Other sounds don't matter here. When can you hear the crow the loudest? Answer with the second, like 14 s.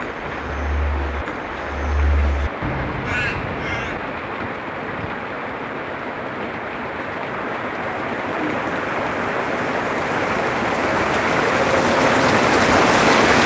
3 s.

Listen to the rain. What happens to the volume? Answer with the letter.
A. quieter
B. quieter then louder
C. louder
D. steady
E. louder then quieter
C.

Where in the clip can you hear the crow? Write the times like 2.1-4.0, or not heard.
0.0-4.1.